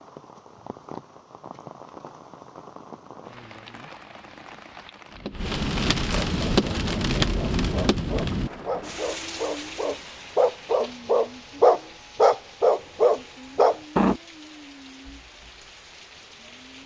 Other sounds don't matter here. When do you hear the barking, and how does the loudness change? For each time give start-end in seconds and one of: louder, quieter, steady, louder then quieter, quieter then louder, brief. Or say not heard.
6.3-14.2 louder.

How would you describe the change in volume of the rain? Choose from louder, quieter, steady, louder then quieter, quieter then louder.
louder then quieter.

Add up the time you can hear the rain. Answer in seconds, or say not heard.
17 s.